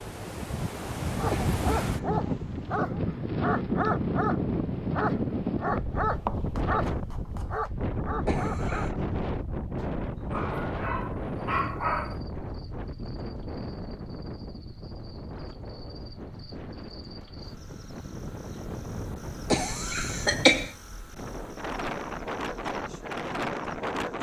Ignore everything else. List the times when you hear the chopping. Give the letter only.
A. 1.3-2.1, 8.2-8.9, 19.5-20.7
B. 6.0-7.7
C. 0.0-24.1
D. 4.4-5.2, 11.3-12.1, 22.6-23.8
B.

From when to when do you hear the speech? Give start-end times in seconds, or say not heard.
not heard.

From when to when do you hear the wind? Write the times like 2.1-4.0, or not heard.
0.0-24.1.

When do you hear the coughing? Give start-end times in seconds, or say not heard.
1.3-2.1, 8.2-8.9, 19.5-20.7.